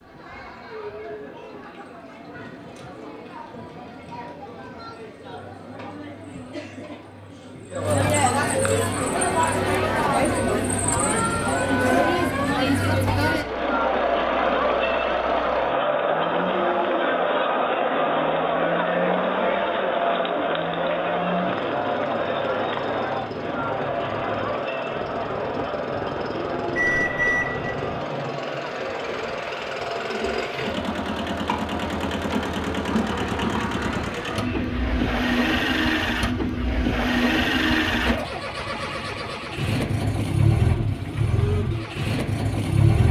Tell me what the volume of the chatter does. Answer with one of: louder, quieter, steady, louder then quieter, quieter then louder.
louder then quieter.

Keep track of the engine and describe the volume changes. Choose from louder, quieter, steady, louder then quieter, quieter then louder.
louder.